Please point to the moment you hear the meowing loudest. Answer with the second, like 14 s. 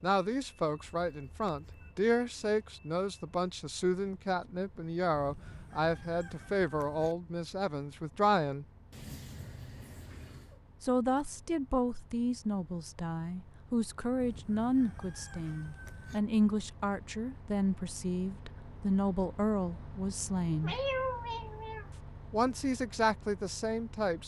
21 s.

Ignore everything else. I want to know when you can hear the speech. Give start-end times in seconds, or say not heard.
0.0-8.7, 10.8-20.8, 22.3-24.2.